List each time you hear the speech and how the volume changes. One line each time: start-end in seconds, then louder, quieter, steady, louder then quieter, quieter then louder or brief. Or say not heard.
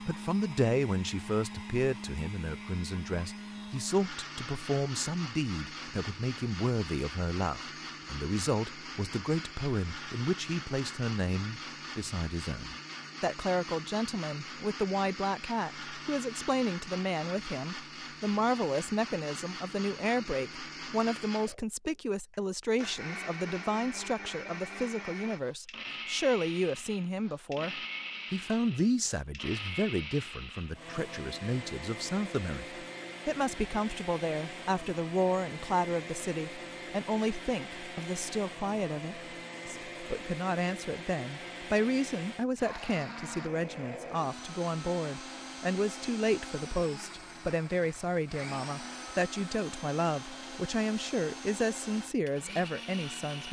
0.0-53.4 steady.